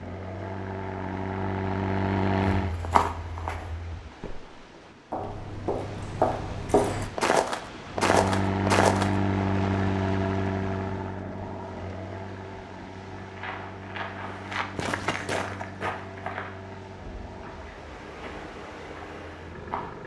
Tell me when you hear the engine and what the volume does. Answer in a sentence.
You can hear the engine briefly from 0.0 to 2.8 s; and from 7.9 to 20.0 s, getting quieter.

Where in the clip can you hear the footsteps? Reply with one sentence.
The footsteps can be heard from 2.5 to 9.1 s and from 13.2 to 20.0 s.